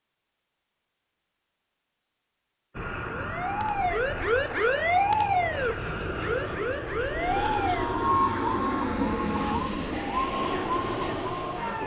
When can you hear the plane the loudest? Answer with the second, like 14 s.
9 s.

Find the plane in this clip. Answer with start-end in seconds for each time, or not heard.
2.8-11.8.